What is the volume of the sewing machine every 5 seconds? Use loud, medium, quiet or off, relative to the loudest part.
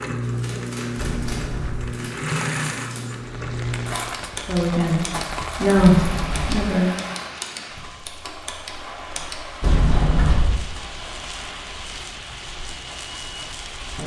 loud, medium, quiet.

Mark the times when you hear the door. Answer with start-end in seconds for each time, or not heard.
1.1-1.9, 5.8-6.7, 9.6-10.7.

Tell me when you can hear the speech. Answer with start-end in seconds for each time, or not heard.
4.5-5.0, 5.6-6.9.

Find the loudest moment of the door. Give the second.
10 s.